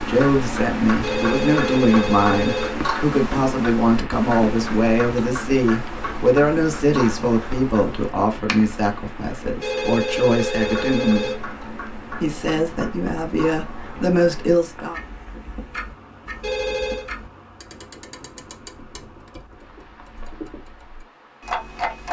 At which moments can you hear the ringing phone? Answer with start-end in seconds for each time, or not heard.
1.0-2.8, 9.6-11.4, 16.4-17.1.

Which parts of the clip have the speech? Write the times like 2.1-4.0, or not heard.
0.0-11.3, 12.2-14.9.